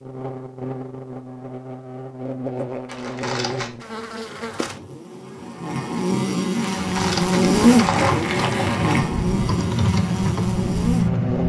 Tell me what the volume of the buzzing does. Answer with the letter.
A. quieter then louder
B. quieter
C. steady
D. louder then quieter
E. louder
D.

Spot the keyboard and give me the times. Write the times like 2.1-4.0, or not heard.
6.7-11.4.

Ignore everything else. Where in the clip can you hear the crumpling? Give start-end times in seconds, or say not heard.
2.9-3.7, 6.8-9.1.